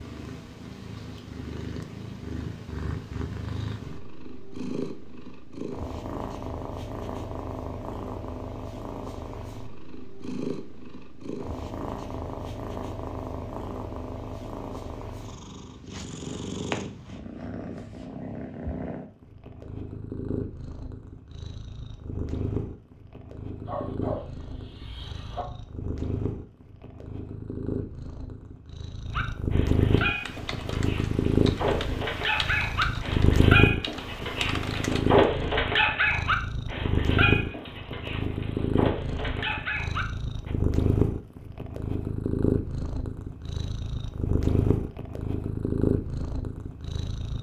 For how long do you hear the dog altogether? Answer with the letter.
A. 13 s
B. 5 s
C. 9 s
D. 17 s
A.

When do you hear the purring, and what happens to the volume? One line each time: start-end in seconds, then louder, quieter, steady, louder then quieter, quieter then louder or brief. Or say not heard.
0.0-47.3 louder.